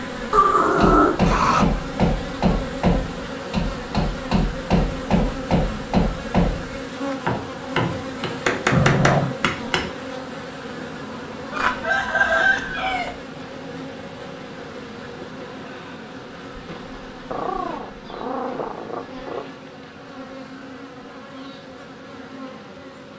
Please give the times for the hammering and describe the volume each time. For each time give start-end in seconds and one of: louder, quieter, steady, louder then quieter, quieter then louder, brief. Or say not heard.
0.8-9.9 steady.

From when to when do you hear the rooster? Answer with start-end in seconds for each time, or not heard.
11.5-13.2.